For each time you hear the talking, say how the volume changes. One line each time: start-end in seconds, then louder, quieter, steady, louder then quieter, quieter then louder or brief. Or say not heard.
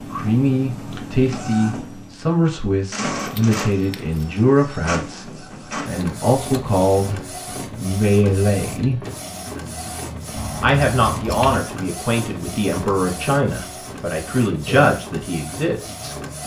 0.1-9.0 steady
10.6-16.1 steady.